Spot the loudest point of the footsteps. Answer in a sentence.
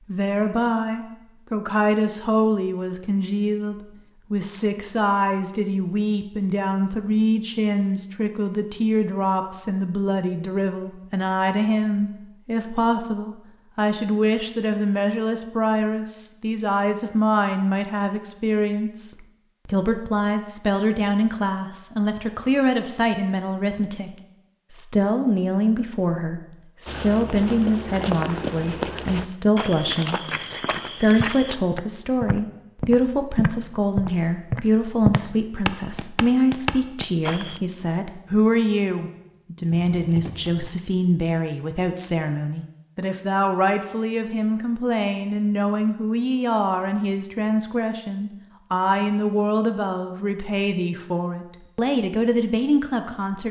The loudest moment of the footsteps is at 35 seconds.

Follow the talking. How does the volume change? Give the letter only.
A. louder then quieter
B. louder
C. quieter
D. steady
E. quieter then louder
D.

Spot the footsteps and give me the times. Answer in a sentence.
You can hear the footsteps from 26.9 to 37.6 s.